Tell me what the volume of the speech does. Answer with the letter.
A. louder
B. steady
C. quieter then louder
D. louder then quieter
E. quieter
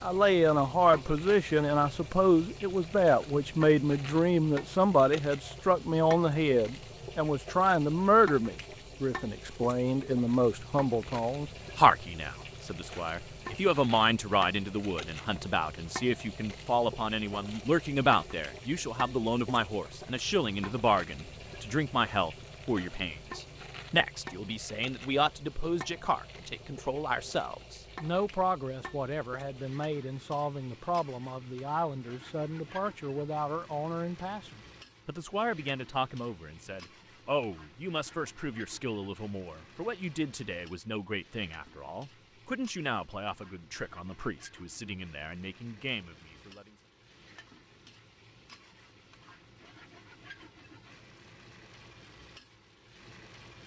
E.